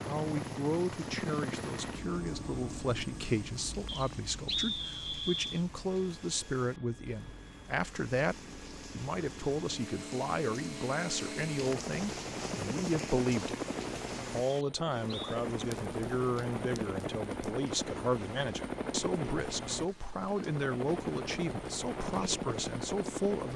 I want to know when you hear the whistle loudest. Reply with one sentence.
The loudest moment of the whistle is at 5 seconds.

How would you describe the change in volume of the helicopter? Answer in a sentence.
The volume of the helicopter goes down, then up.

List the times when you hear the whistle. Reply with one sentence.
You can hear the whistle from 3.9 to 5.6 s and from 14.4 to 15.3 s.